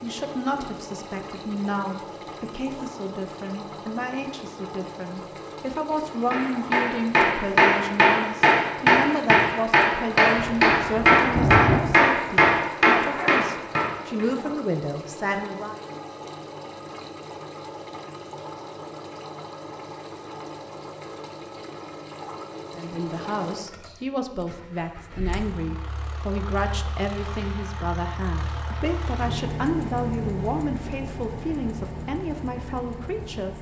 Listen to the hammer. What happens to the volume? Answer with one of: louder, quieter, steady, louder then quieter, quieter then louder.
steady.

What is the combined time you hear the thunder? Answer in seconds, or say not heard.
2 s.